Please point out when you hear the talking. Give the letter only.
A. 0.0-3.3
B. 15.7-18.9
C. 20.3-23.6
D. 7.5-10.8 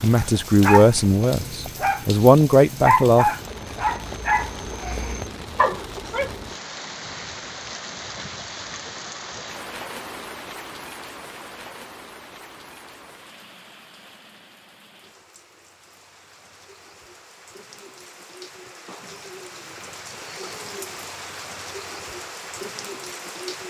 A.